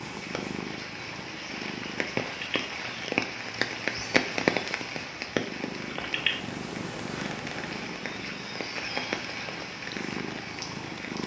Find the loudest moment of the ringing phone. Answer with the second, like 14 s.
6 s.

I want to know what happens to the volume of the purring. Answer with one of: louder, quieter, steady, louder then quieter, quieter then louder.
quieter then louder.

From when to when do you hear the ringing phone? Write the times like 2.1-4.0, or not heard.
2.2-2.6, 5.8-6.4.